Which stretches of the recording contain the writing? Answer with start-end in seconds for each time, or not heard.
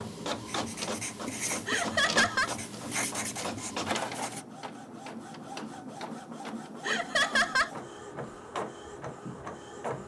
0.0-4.5.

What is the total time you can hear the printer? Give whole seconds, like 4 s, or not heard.
10 s.